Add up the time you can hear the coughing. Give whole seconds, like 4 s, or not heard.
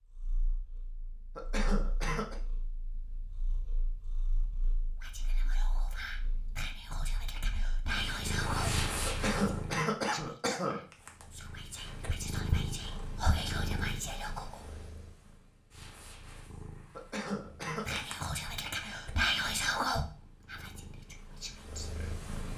4 s.